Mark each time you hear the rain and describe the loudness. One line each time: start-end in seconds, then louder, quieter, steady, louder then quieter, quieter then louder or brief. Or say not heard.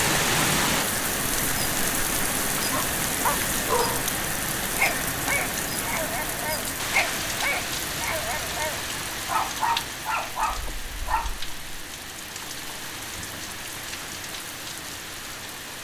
0.0-15.7 quieter.